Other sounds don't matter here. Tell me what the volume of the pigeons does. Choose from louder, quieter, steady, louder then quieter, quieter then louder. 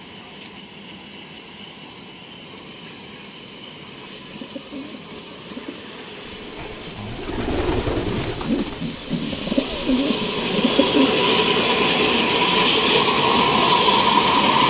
louder.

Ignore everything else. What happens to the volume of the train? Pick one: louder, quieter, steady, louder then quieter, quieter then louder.
louder.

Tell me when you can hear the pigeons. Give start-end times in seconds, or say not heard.
4.2-11.1.